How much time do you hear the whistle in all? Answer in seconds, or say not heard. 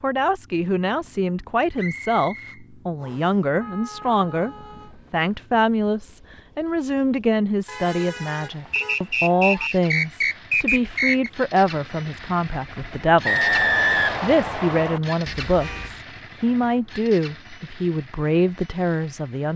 6 s.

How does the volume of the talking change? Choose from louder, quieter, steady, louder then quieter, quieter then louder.
steady.